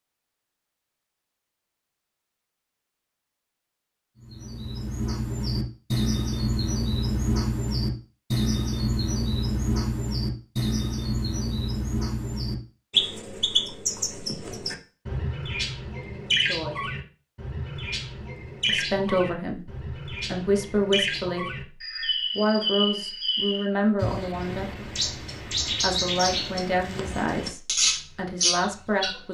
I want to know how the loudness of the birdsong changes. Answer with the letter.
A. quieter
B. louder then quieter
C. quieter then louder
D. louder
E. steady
E.